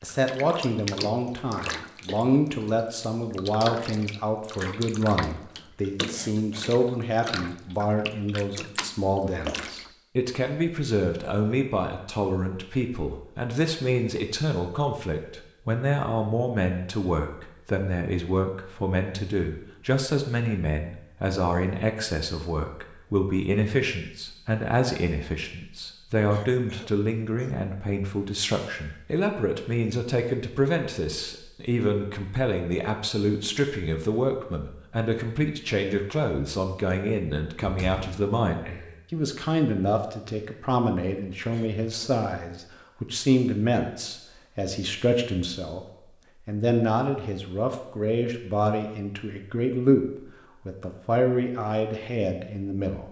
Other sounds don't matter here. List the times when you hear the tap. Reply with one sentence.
You can hear the tap from 0.0 to 9.9 s.